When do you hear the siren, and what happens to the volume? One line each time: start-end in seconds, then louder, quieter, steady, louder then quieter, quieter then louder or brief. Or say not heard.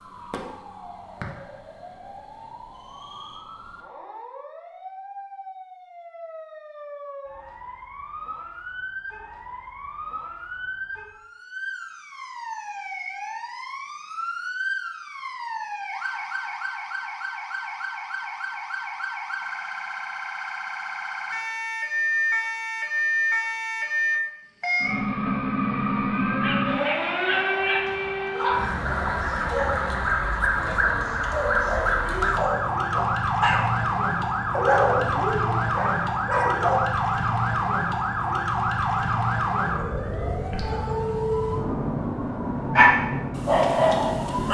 0.0-44.4 louder.